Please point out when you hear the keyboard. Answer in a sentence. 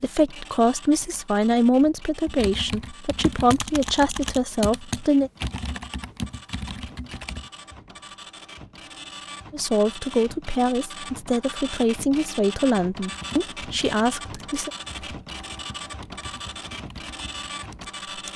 You can hear the keyboard from 2.2 to 7.5 s and from 13.1 to 18.3 s.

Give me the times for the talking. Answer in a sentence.
The talking can be heard from 0.0 to 5.3 s and from 9.5 to 14.7 s.